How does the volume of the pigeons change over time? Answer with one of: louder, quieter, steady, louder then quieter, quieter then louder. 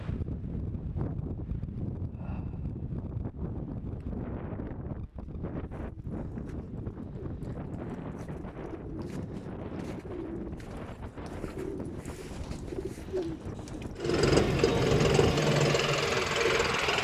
louder.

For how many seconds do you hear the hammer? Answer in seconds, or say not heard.
not heard.